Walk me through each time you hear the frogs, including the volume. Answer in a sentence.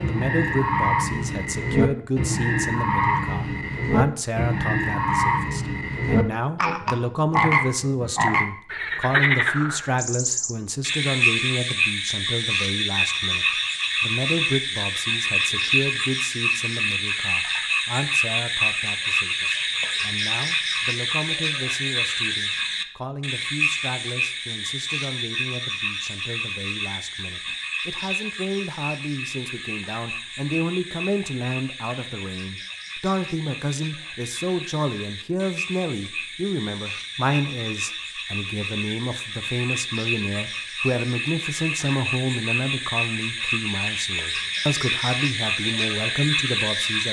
You can hear the frogs from 0.0 to 47.0 s, getting quieter then louder.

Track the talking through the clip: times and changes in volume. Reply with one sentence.
You can hear the talking from 0.1 to 47.0 s, getting quieter then louder.